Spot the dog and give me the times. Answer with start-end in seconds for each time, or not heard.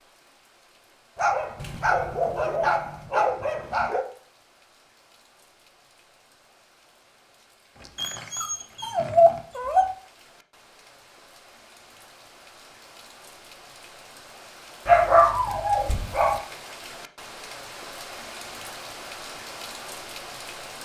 1.1-4.0, 8.0-9.8, 14.8-16.4.